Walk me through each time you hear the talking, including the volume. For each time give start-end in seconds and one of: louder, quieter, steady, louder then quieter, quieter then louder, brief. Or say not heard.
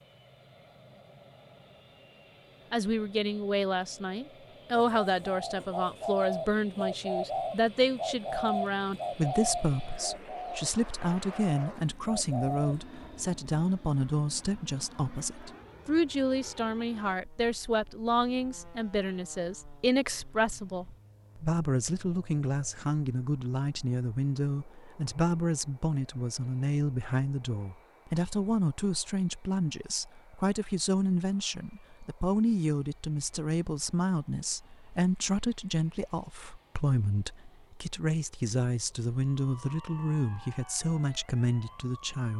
2.7-42.3 steady.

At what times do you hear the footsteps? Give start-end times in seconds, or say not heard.
not heard.